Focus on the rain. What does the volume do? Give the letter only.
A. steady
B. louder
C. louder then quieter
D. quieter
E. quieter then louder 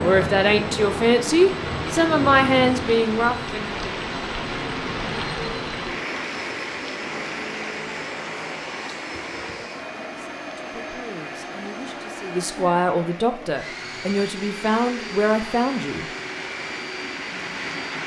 E.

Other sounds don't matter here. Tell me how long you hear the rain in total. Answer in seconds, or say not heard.
18 s.